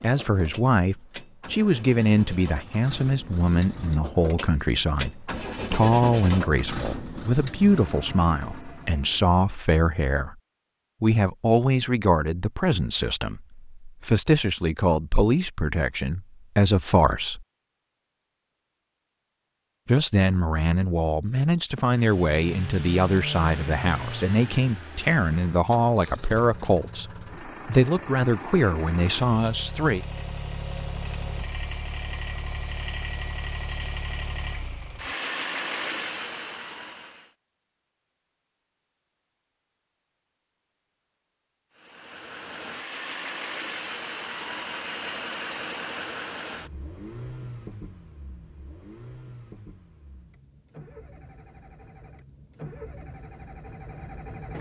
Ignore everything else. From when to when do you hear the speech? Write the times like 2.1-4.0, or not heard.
0.0-10.3, 11.0-17.4, 19.9-30.0.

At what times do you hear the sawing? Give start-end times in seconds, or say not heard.
not heard.